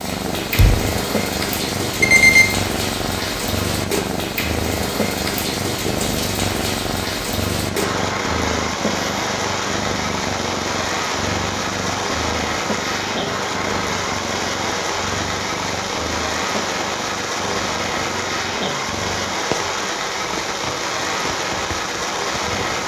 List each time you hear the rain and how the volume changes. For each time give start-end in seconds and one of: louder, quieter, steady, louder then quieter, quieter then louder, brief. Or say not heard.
0.0-22.8 steady.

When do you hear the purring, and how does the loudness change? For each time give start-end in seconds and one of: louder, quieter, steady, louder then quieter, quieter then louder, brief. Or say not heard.
0.0-22.8 quieter.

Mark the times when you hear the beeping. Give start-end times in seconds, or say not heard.
2.0-2.6.